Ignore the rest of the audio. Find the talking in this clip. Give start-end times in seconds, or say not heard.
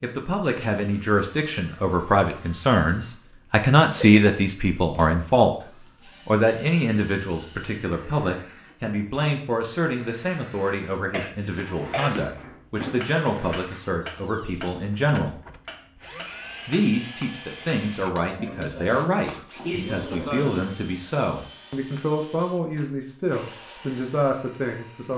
0.0-15.4, 16.6-25.1.